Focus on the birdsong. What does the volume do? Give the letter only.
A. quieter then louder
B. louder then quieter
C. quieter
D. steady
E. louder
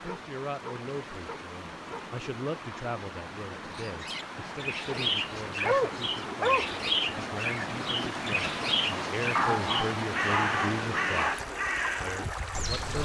D.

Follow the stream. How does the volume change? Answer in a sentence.
The loudness of the stream goes up.